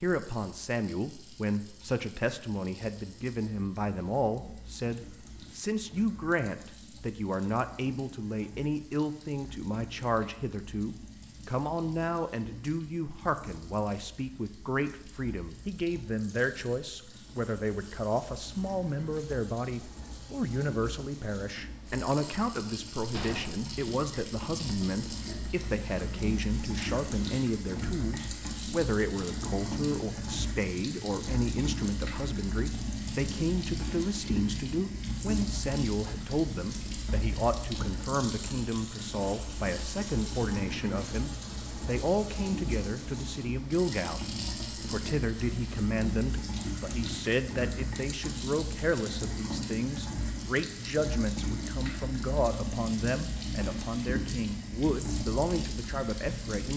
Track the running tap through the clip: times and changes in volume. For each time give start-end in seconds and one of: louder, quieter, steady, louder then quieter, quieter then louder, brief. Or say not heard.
0.0-56.7 louder.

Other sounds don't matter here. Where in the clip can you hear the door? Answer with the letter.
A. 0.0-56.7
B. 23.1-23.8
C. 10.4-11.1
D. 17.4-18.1
B.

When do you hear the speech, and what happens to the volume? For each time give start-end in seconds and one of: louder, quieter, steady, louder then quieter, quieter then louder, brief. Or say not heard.
0.0-56.7 steady.